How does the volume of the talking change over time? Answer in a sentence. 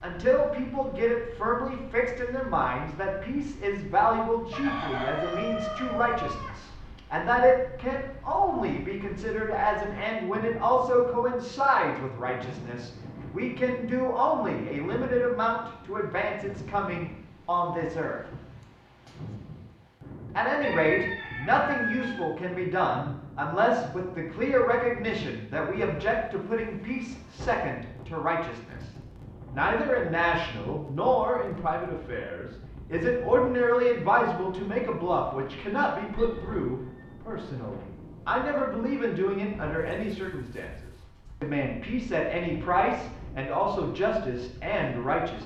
The loudness of the talking stays about the same.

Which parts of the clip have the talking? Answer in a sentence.
You can hear the talking from 0.0 to 18.2 s, from 20.4 to 28.9 s, from 29.5 to 40.7 s and from 41.4 to 45.4 s.